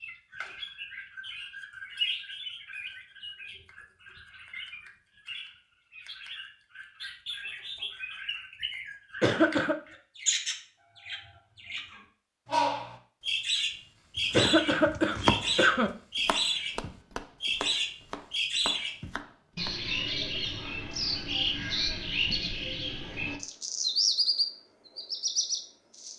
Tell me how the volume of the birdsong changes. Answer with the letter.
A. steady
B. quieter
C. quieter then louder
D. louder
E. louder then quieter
D.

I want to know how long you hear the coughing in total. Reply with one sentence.
The coughing can be heard for 2 seconds in total.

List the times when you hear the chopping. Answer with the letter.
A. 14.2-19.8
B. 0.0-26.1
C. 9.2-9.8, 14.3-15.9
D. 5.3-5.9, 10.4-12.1
A.